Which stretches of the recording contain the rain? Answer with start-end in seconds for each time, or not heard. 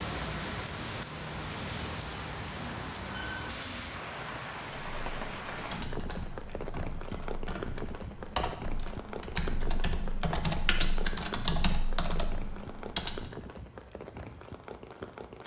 0.0-15.4.